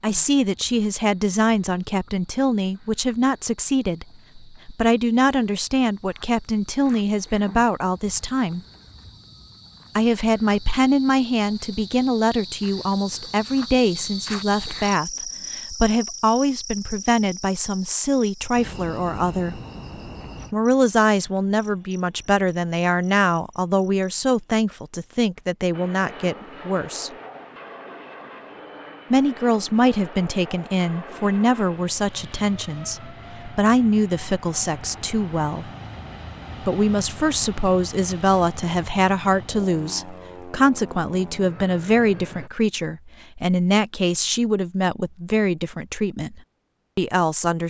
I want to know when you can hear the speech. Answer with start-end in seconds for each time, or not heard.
0.0-8.6, 9.9-19.6, 20.5-27.1, 29.1-35.7, 36.6-47.6.